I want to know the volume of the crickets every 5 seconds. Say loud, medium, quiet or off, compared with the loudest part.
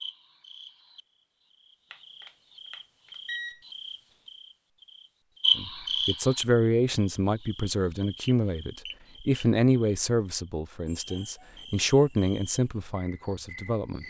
quiet, loud, quiet.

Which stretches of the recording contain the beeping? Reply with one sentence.
The beeping can be heard from 1.9 to 3.6 s and from 8.2 to 9.4 s.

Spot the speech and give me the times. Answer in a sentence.
You can hear the speech from 5.5 to 14.0 s.